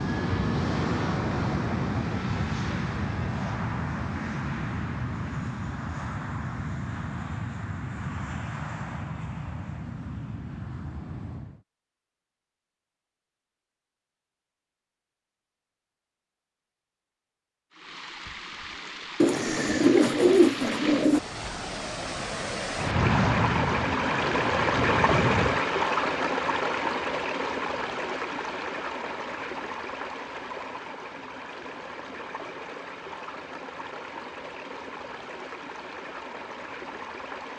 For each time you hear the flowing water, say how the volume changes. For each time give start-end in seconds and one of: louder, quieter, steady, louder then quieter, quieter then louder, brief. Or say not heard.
17.7-37.5 louder then quieter.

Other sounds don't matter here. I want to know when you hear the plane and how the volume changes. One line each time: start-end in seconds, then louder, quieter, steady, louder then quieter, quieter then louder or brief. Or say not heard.
0.0-11.7 quieter
22.8-25.6 brief.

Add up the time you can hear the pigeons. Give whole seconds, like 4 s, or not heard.
2 s.